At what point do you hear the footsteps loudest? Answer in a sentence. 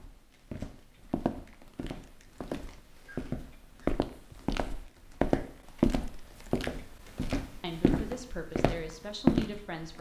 The loudest moment of the footsteps is at 9 seconds.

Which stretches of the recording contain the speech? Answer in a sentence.
The speech can be heard from 7.6 to 9.9 s.